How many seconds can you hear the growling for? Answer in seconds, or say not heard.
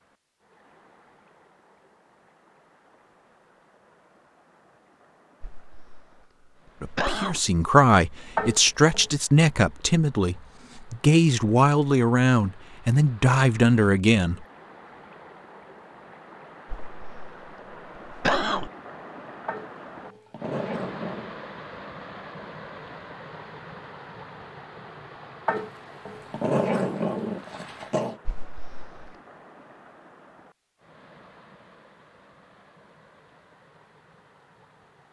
5 s.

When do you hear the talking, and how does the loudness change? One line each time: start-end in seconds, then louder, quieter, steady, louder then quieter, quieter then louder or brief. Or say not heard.
6.8-14.4 steady.